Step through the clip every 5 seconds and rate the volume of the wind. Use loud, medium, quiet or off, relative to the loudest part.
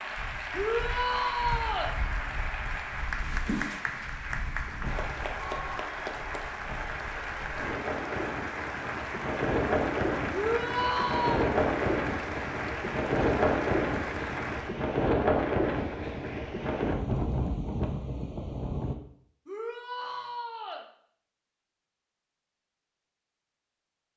quiet, medium, loud, loud, off.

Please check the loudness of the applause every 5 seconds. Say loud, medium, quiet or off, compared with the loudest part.
loud, loud, loud, off, off.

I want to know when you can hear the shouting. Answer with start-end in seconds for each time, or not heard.
0.5-1.9, 10.3-11.4, 19.4-20.9.